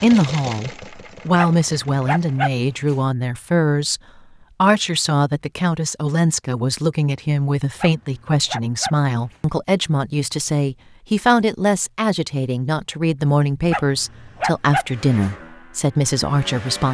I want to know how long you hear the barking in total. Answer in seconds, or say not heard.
5 s.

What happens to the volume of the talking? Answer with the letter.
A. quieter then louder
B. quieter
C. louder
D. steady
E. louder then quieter
D.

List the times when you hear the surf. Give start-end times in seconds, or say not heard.
not heard.